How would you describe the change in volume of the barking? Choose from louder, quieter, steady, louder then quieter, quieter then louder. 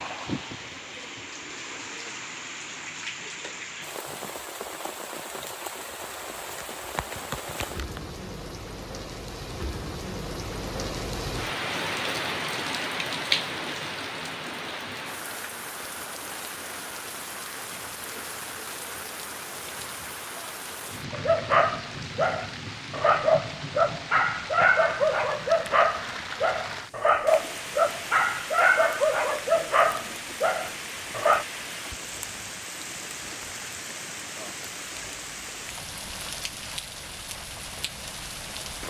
steady.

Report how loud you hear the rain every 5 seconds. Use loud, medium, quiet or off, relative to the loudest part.
medium, medium, loud, medium, medium, medium, medium, medium.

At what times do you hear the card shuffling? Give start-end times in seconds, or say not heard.
6.0-8.0.